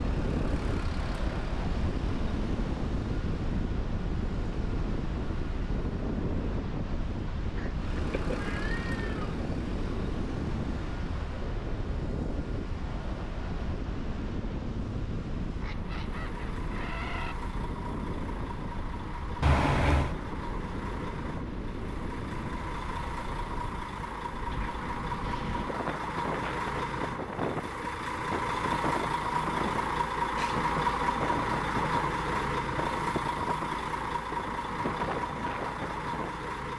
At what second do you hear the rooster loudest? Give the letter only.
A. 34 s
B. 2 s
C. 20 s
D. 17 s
D.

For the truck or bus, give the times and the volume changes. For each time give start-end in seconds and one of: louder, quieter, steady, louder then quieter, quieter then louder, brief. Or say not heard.
0.0-36.7 louder.